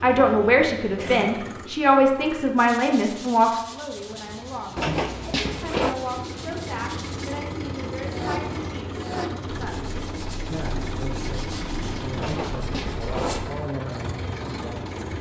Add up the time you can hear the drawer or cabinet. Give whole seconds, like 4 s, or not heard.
3 s.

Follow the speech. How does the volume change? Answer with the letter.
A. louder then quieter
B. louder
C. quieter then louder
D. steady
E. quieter
E.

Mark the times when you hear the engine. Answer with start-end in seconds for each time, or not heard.
0.0-15.1.